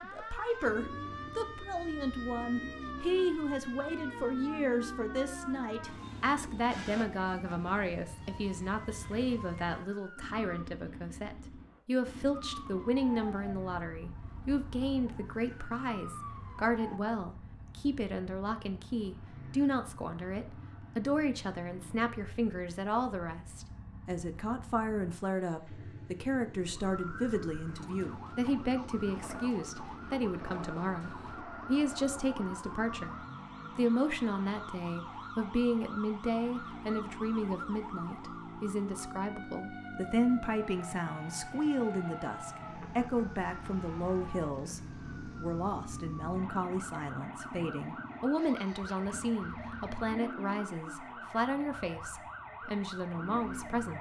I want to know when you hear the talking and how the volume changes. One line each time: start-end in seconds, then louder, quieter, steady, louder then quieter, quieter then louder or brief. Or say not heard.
0.0-53.9 steady.